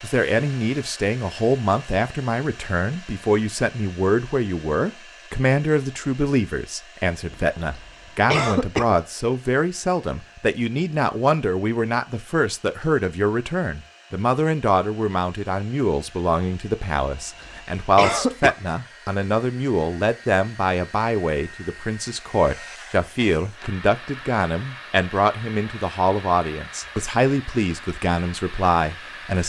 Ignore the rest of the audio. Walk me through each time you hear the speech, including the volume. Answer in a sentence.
The speech can be heard from 0.0 to 29.4 s, at a steady volume.